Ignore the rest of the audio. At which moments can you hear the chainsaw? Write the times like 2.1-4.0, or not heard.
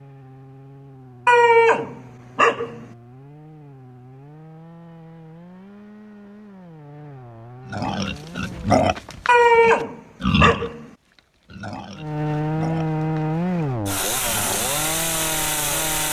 0.0-8.8, 11.9-16.0.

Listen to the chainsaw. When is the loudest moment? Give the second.
13 s.